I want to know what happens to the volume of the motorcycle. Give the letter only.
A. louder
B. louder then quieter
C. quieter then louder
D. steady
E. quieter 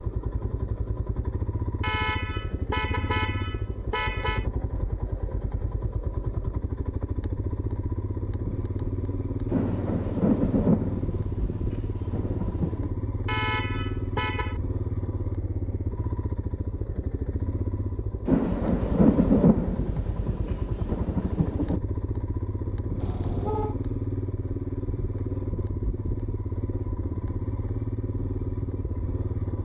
D.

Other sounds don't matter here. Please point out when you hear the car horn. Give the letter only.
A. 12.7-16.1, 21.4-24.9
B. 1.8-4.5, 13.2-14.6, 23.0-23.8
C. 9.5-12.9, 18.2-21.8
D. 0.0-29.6
B.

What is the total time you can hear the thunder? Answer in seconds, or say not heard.
7 s.